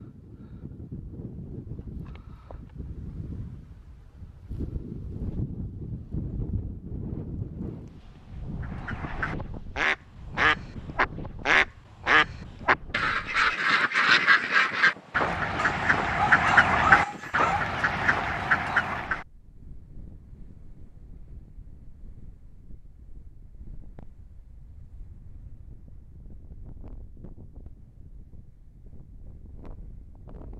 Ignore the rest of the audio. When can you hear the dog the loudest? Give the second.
17 s.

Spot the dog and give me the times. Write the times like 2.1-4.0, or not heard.
15.6-17.6.